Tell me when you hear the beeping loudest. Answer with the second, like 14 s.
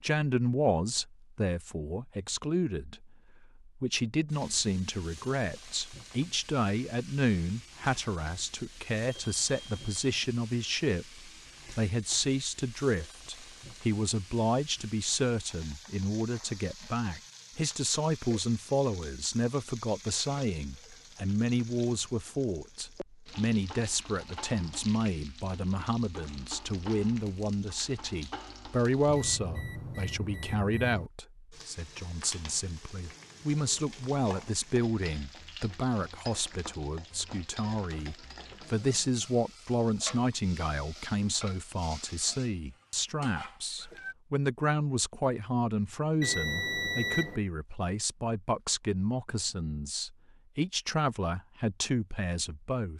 47 s.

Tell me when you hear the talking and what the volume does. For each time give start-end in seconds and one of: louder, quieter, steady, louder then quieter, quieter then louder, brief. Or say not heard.
0.0-52.9 steady.